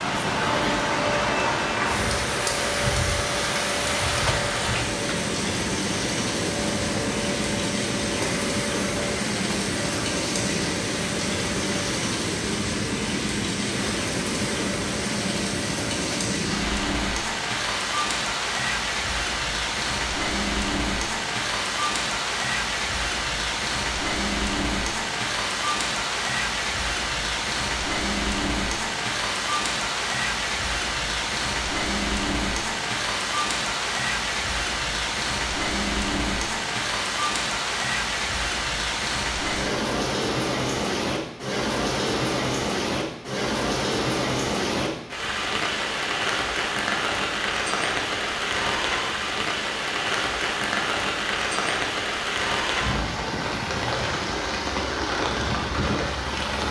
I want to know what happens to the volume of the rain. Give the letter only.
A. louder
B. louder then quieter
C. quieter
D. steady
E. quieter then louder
D.